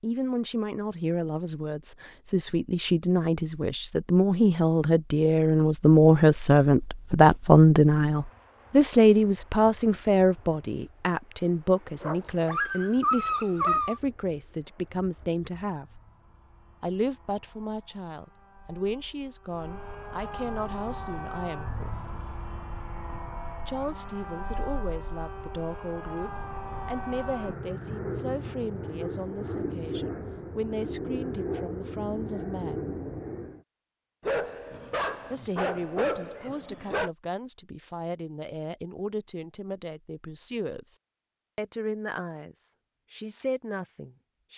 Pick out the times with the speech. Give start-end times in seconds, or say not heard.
0.0-16.0, 16.8-21.9, 23.6-33.0, 35.3-41.0, 41.5-44.5.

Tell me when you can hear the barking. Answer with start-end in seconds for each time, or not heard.
12.0-14.0, 34.2-37.1.